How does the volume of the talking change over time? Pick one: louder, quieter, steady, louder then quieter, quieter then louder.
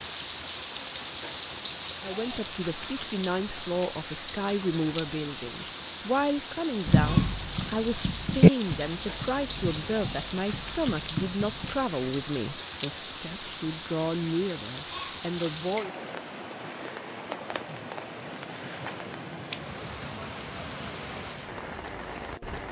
steady.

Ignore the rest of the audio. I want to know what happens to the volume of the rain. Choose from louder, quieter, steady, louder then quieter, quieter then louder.
steady.